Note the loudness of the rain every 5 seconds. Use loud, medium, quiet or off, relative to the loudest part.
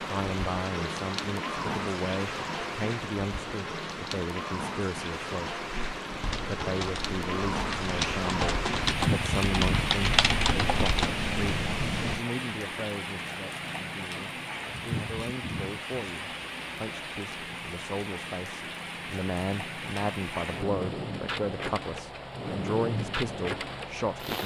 loud, loud, loud, medium, loud.